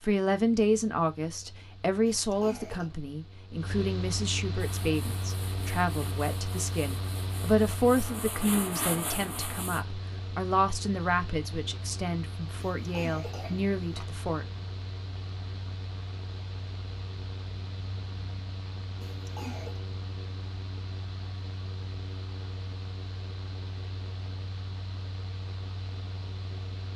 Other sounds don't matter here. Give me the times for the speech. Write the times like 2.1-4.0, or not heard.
0.0-14.4.